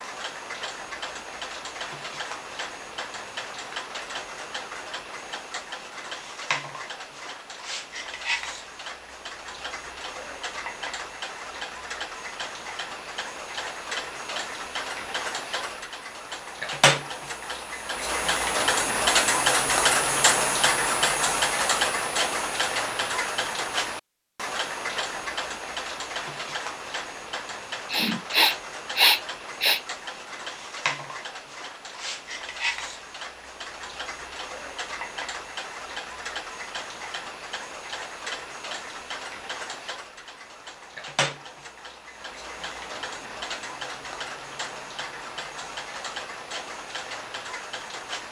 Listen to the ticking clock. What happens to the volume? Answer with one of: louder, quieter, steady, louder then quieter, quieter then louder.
louder then quieter.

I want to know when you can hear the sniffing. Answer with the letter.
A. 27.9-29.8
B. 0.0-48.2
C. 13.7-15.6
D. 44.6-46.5
A.